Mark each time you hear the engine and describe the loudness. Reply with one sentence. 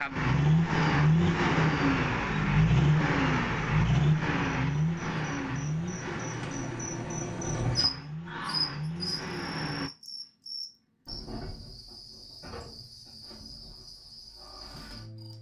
You can hear the engine from 0.0 to 9.9 s, getting quieter.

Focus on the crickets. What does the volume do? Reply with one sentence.
The loudness of the crickets goes up, then down.